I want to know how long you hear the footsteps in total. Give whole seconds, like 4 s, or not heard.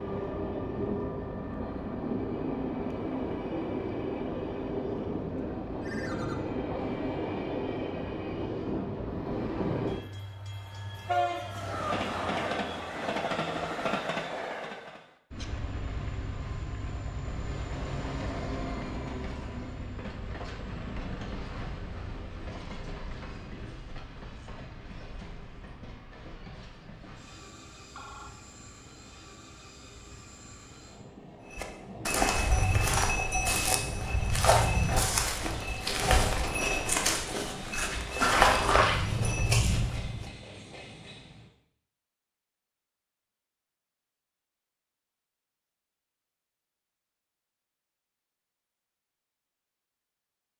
9 s.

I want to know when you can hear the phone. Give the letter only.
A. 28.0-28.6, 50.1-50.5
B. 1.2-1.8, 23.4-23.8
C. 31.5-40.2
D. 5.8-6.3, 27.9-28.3
D.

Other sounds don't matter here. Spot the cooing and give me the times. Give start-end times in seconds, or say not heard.
not heard.